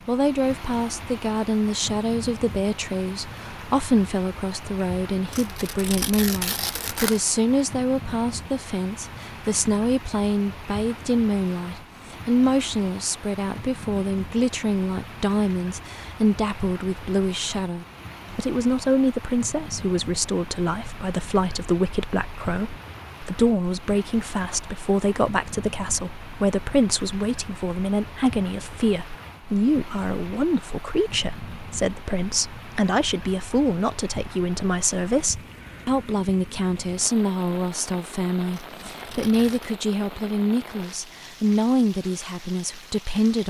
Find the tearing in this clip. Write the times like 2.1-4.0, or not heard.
5.3-7.2, 38.5-39.8.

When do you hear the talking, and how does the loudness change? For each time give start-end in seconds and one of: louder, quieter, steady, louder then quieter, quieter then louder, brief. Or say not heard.
0.1-43.4 steady.